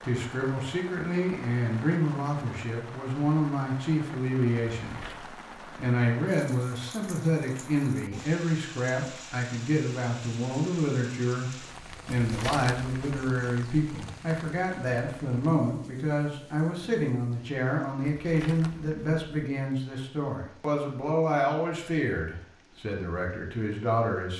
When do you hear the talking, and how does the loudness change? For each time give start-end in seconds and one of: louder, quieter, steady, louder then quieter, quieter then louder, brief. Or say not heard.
0.0-24.3 steady.